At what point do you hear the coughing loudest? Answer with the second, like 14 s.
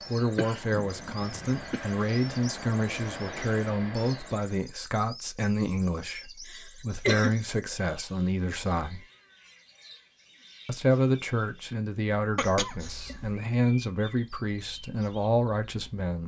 7 s.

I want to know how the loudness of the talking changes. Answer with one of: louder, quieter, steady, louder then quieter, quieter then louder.
steady.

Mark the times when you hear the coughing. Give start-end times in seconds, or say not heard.
0.3-1.8, 6.5-7.5, 12.3-13.4.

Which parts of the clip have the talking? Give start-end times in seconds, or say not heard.
0.1-9.1, 10.7-16.2.